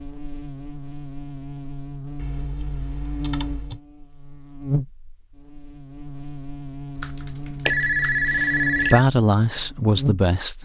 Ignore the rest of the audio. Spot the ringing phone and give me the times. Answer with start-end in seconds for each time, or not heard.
7.7-9.1.